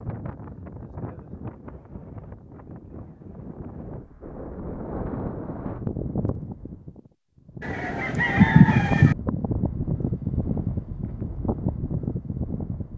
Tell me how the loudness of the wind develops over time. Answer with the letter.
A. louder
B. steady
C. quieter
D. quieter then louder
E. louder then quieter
A.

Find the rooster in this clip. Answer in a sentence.
The rooster can be heard from 7.6 to 9.2 s.